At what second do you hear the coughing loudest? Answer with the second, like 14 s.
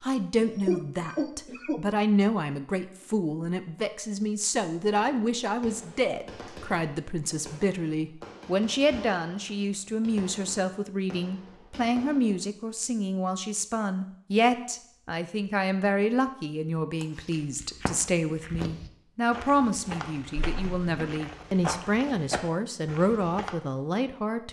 1 s.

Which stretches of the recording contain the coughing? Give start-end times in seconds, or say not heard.
0.3-1.8, 20.5-21.2.